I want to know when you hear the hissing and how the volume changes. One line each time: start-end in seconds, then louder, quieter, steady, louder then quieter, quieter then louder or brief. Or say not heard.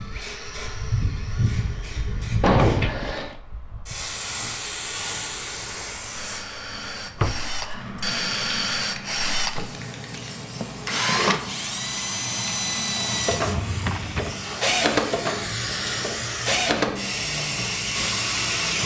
0.0-18.8 quieter then louder.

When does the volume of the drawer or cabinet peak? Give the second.
3 s.